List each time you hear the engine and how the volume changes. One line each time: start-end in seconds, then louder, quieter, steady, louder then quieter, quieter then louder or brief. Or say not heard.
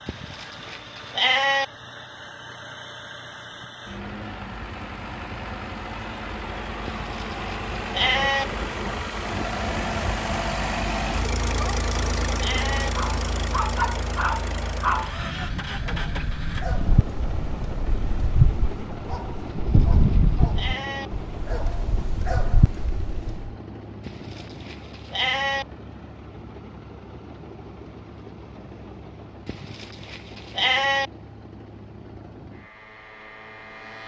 0.0-34.0 louder then quieter.